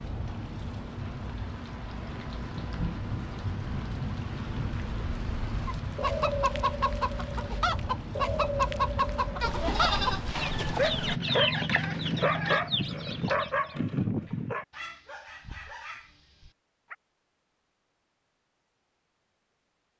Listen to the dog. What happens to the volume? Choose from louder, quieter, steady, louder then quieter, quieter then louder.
quieter.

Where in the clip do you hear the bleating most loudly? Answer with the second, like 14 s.
10 s.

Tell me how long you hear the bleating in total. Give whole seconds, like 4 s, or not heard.
2 s.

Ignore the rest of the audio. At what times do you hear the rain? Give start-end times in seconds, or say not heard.
0.0-10.3.